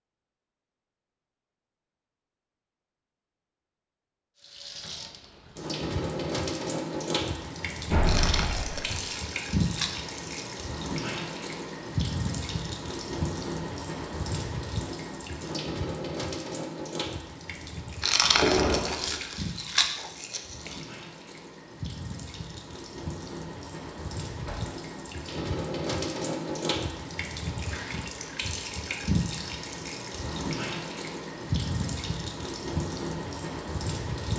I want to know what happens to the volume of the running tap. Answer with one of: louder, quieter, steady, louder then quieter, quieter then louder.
quieter then louder.